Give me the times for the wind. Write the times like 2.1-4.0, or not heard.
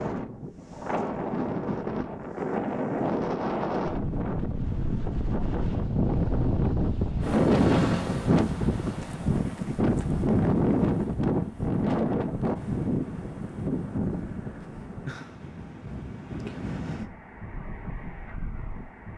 0.0-19.1.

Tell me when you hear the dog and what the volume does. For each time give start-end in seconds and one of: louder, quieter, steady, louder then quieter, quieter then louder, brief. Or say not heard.
not heard.